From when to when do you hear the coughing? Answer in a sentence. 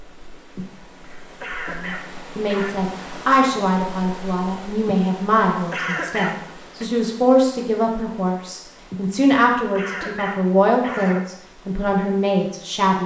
The coughing can be heard from 0.6 to 2.8 s, from 4.8 to 6.8 s and from 8.9 to 11.2 s.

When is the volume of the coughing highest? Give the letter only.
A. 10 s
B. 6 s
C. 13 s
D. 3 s
B.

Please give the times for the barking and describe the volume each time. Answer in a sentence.
The barking can't be heard in this clip.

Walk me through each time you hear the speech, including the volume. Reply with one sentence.
You can hear the speech from 1.7 to 13.0 s, at a steady volume.